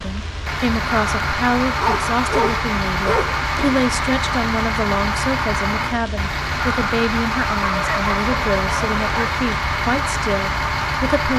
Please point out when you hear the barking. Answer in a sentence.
You can hear the barking from 1.6 to 3.8 s and from 7.6 to 9.3 s.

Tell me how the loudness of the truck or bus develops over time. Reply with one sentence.
The volume of the truck or bus stays about the same.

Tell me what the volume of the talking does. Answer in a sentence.
The loudness of the talking stays about the same.